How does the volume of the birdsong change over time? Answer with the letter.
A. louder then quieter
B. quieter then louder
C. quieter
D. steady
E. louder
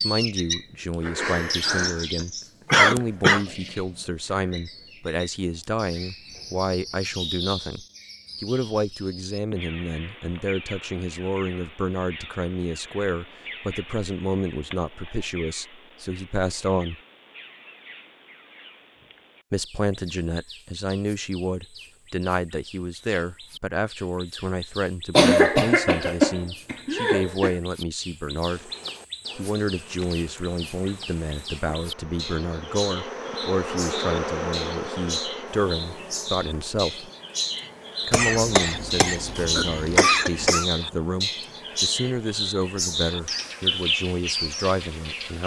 B.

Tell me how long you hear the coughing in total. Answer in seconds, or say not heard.
6 s.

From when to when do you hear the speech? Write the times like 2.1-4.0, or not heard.
0.0-16.9, 19.5-28.7, 29.4-37.1, 38.0-45.4.